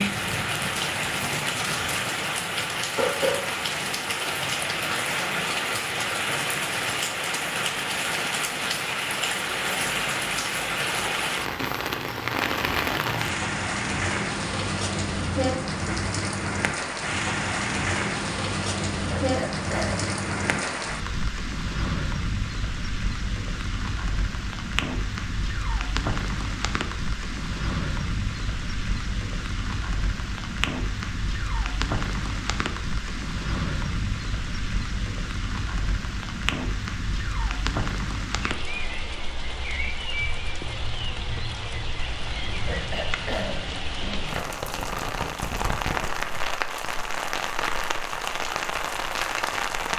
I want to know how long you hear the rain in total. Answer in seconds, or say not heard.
50 s.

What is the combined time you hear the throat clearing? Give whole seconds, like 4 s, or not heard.
3 s.